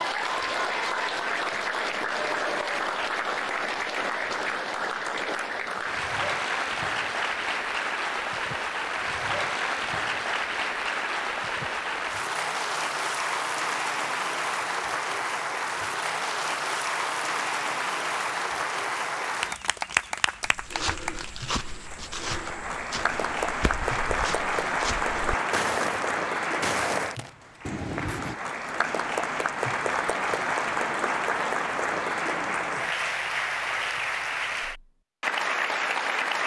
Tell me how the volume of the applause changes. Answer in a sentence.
The loudness of the applause stays about the same.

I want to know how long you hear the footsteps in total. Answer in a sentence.
You can hear the footsteps for 8 seconds altogether.